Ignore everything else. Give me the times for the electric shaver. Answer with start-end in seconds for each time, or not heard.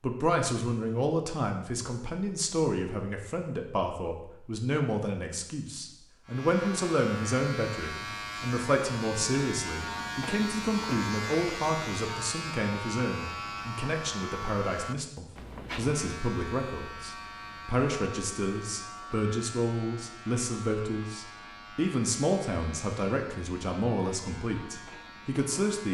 6.2-25.8.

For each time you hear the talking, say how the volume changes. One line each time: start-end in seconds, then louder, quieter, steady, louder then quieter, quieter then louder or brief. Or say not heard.
0.0-25.8 steady.